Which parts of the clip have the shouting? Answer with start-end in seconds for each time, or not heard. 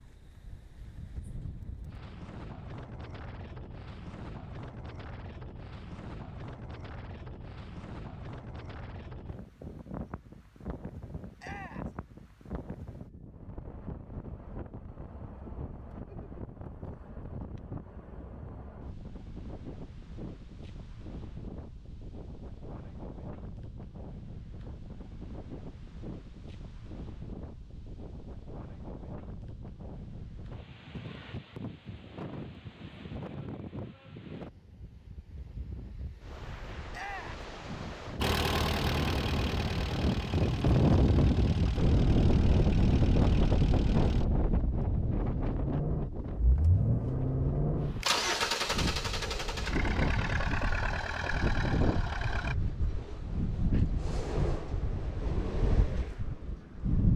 11.3-11.9, 36.9-37.5.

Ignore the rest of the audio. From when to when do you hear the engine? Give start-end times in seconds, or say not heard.
38.2-52.5.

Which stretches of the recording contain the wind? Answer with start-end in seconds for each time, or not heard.
0.0-57.1.